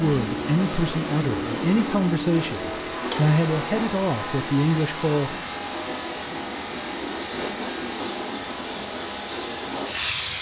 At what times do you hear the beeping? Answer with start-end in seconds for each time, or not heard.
not heard.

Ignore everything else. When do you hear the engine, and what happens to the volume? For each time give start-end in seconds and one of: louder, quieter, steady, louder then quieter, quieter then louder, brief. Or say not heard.
0.0-10.3 quieter.